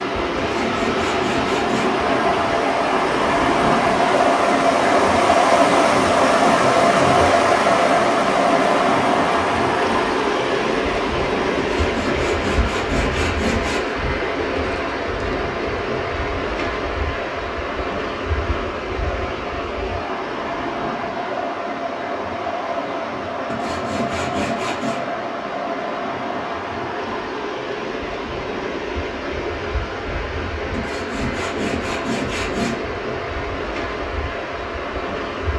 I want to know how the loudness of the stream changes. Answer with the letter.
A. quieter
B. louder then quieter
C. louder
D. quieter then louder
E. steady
A.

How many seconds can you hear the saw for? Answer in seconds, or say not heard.
8 s.